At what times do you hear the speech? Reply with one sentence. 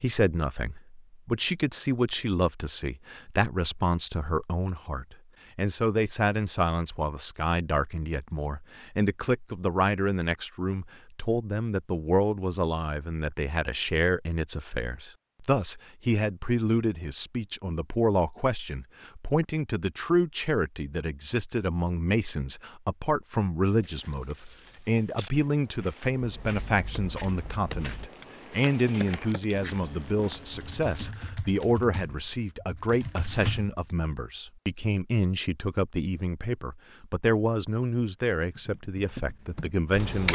The speech can be heard from 0.0 to 40.2 s.